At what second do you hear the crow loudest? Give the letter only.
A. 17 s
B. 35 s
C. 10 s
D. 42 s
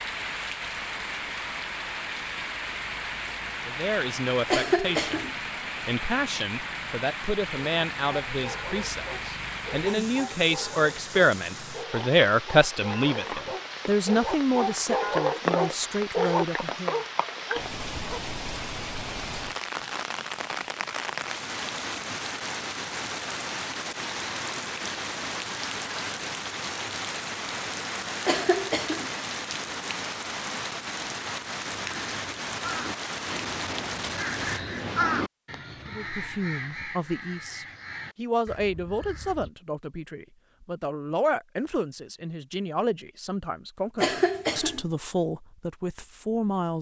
B.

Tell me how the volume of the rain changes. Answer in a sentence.
The loudness of the rain stays about the same.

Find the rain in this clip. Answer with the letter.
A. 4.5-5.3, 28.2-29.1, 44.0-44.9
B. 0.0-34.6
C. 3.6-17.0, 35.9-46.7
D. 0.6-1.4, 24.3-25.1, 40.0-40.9
B.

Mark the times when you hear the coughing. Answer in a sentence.
The coughing can be heard from 4.5 to 5.3 s, from 28.2 to 29.1 s and from 44.0 to 44.9 s.